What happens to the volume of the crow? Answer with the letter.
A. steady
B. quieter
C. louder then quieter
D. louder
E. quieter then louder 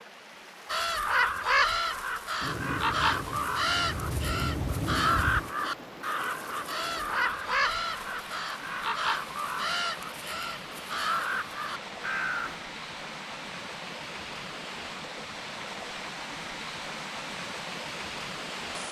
B.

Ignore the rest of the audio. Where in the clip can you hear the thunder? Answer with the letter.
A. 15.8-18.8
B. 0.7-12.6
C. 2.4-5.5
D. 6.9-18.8
C.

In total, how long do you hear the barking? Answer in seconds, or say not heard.
not heard.